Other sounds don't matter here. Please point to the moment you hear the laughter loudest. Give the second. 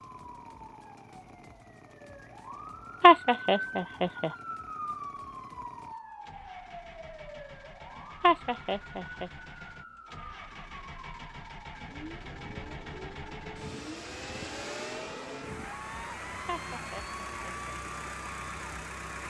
3 s.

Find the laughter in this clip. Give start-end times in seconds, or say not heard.
3.0-4.3, 8.2-9.3, 16.4-17.7.